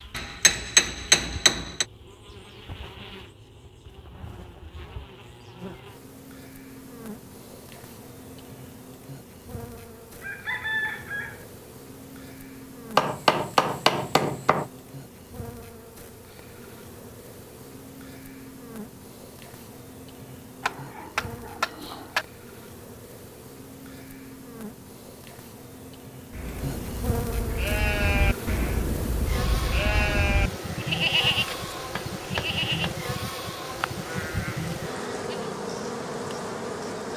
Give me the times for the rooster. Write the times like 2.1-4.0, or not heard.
10.2-11.4.